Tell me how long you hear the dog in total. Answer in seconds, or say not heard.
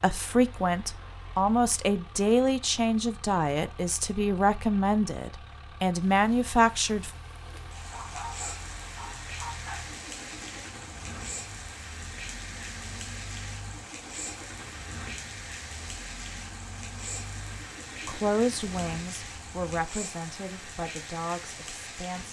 2 s.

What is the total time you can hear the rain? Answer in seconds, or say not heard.
16 s.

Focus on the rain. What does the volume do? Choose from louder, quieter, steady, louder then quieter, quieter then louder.
steady.